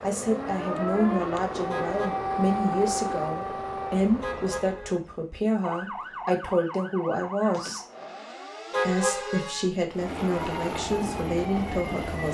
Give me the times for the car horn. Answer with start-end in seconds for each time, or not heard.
1.7-2.3, 4.2-5.0, 8.7-9.5.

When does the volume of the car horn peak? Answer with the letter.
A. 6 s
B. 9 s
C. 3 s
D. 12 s
B.